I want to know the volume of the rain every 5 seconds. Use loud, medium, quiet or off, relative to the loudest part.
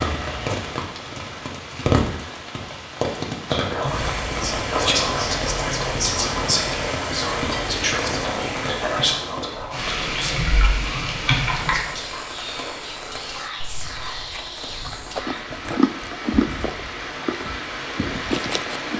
loud, loud, medium, medium.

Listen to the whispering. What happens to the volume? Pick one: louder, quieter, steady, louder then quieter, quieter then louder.
quieter.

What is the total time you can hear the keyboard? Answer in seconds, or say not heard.
2 s.